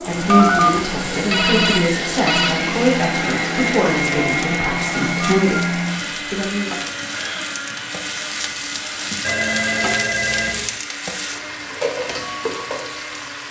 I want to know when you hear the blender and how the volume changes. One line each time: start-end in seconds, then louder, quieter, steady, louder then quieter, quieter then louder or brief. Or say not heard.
0.0-13.4 quieter.